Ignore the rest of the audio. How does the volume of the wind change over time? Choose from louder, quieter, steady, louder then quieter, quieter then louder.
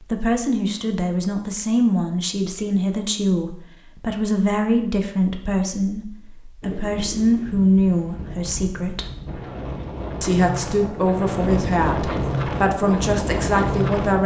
louder.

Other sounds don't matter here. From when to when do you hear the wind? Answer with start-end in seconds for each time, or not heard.
6.6-14.2.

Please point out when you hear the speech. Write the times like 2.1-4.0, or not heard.
0.1-9.1, 10.2-14.2.